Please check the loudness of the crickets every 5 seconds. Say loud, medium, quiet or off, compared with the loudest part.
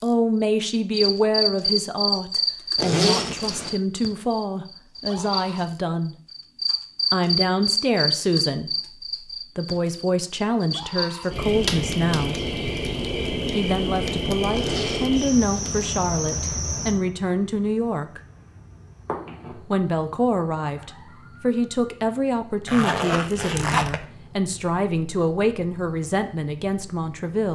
loud, loud, loud, medium, quiet, quiet.